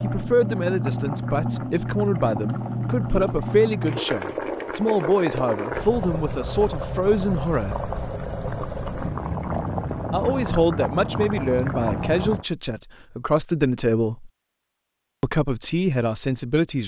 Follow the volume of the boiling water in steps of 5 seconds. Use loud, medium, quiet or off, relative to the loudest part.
loud, loud, loud, off.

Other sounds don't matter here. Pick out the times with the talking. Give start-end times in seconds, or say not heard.
0.0-7.8, 10.1-14.3, 15.2-16.8.